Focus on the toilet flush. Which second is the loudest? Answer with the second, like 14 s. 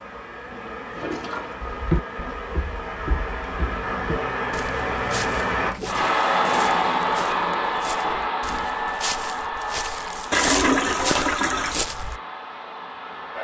11 s.